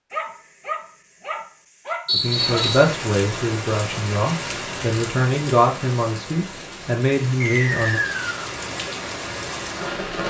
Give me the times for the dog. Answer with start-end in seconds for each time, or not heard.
0.1-2.7.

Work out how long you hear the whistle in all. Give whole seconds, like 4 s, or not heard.
2 s.